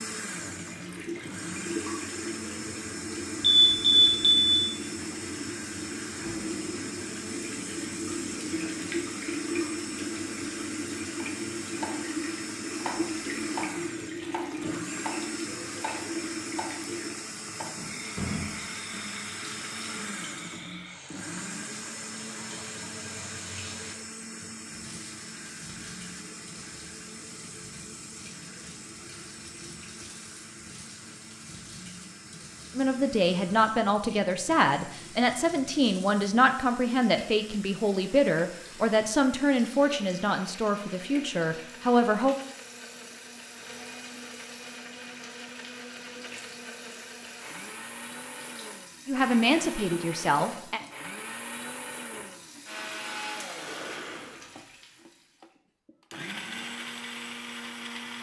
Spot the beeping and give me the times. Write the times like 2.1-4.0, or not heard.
3.4-4.5.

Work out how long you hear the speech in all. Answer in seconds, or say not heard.
11 s.